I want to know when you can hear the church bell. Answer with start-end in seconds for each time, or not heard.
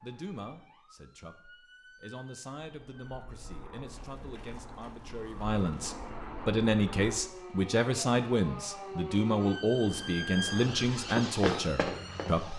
not heard.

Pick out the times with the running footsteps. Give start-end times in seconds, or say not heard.
11.1-12.5.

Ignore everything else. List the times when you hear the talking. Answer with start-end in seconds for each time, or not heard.
0.0-12.5.